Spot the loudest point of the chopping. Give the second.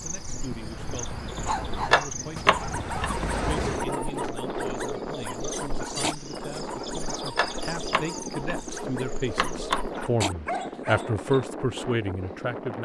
2 s.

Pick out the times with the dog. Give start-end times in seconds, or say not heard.
1.4-11.4.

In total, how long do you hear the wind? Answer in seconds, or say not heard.
13 s.